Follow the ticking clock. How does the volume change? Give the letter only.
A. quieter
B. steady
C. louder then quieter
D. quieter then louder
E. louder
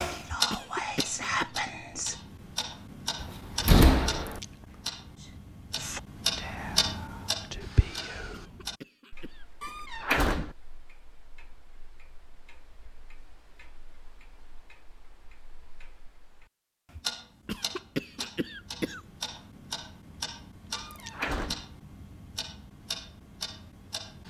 D.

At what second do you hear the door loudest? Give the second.
4 s.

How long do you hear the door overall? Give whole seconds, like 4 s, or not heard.
3 s.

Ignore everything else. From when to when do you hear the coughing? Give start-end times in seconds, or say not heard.
0.5-1.5, 8.3-9.7, 17.4-19.0.